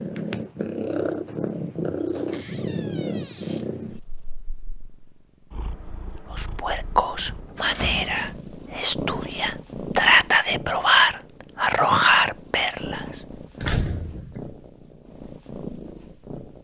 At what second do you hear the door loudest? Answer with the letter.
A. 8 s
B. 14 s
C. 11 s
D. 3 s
B.